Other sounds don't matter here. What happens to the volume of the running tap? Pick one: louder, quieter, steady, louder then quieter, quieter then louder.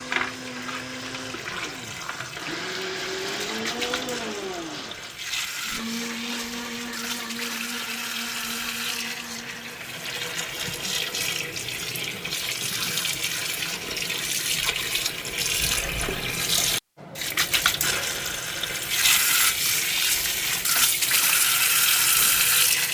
louder.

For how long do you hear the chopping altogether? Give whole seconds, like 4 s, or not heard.
not heard.